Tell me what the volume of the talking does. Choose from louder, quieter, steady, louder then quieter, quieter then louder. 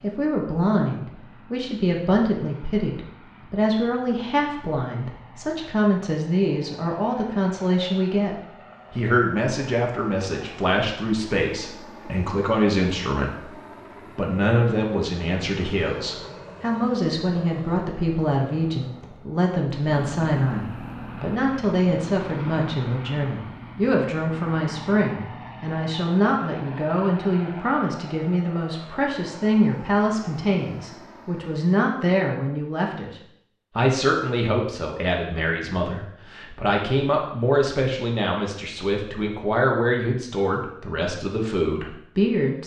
steady.